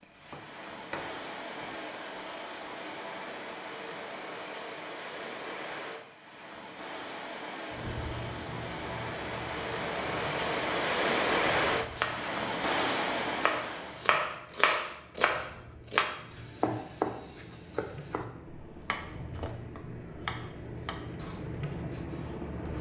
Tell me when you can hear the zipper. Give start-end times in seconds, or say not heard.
not heard.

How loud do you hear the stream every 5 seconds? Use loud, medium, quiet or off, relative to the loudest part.
medium, medium, loud, off, off.